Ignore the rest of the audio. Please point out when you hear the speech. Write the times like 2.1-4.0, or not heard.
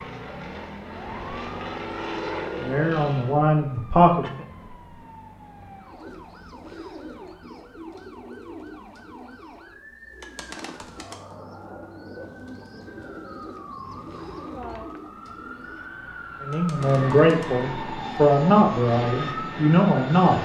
2.5-4.3, 16.4-20.4.